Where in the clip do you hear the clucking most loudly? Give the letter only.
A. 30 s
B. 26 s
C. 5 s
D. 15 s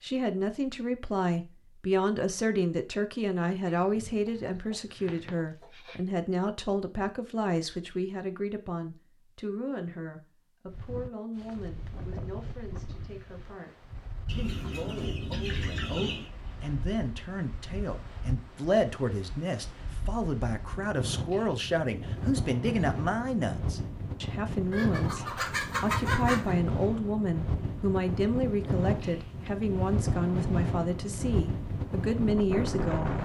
B.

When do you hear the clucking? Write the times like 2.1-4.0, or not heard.
3.6-6.0, 14.2-16.3, 24.7-26.6.